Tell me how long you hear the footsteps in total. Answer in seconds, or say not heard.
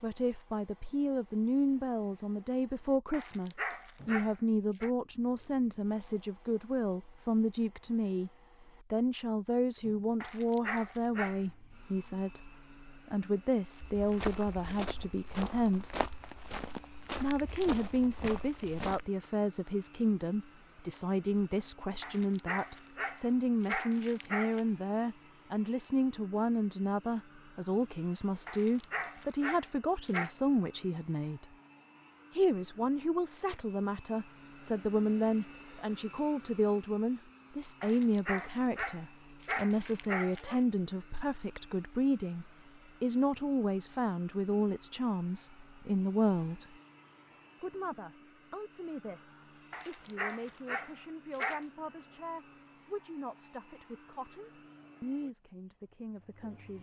5 s.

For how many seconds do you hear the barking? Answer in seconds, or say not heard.
12 s.